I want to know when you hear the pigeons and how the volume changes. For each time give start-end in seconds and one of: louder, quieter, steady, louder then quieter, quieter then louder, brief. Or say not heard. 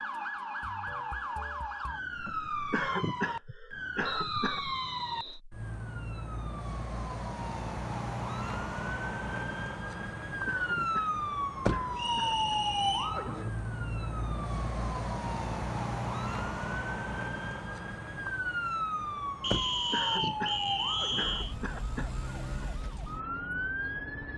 not heard.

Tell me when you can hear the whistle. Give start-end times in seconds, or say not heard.
4.0-5.4, 11.9-13.2, 19.4-21.6.